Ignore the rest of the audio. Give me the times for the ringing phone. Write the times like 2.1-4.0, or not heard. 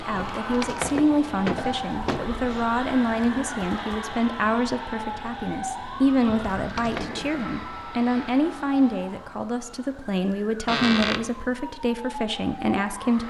not heard.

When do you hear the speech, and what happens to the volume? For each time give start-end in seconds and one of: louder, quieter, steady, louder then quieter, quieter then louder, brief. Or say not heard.
0.0-13.2 steady.